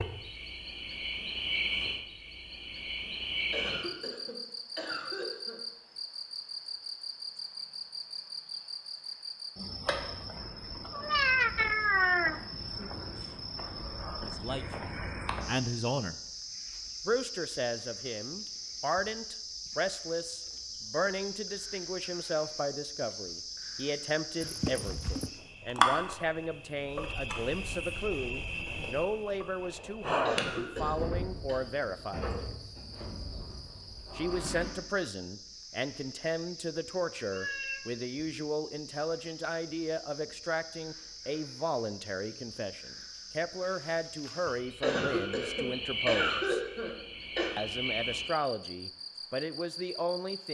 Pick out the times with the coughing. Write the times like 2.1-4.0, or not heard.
3.5-5.6, 30.2-31.6, 44.8-47.5.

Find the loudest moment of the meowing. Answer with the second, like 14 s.
11 s.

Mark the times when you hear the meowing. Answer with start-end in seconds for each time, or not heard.
10.9-12.9, 24.4-25.3, 37.3-37.9.